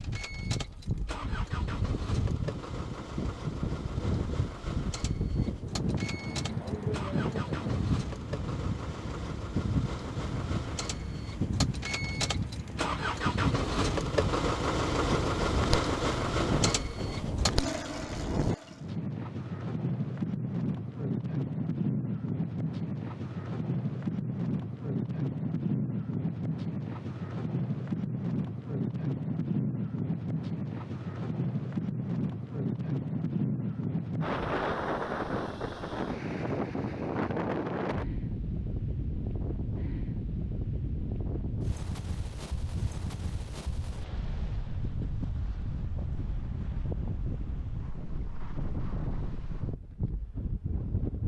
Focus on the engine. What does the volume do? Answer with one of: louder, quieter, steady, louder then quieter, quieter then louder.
louder.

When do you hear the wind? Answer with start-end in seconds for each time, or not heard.
0.0-51.2.